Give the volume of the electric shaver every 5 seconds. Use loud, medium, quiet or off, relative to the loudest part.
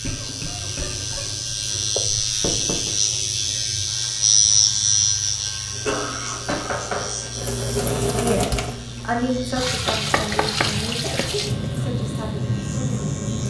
loud, medium, quiet.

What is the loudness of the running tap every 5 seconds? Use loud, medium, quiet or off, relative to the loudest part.
quiet, loud, loud.